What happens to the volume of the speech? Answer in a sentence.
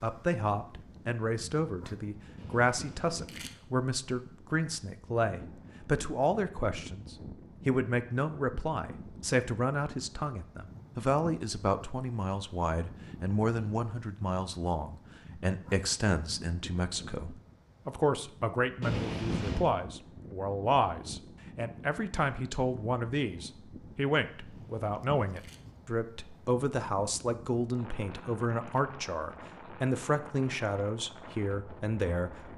The loudness of the speech stays about the same.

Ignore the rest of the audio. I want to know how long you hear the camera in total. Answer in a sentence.
You can hear the camera for 3 seconds altogether.